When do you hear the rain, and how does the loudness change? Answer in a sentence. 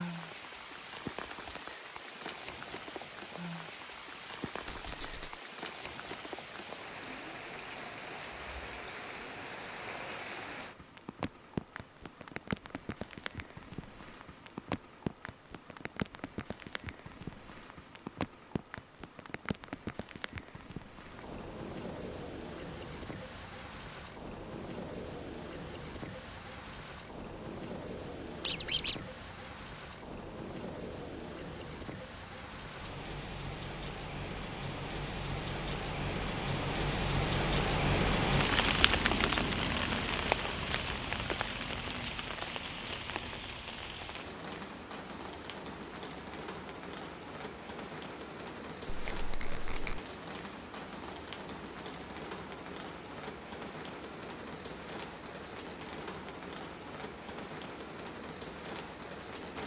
The rain can be heard from 0.0 to 59.6 s, getting louder then quieter.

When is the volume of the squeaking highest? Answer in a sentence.
The volume of the squeaking peaks at 29 seconds.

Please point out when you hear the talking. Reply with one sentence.
You can't hear the talking here.